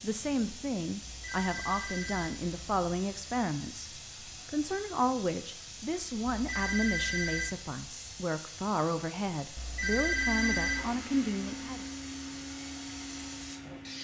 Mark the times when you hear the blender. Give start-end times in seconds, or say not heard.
10.1-13.9.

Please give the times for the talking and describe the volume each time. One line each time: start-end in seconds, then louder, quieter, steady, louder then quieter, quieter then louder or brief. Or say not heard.
0.0-11.8 steady.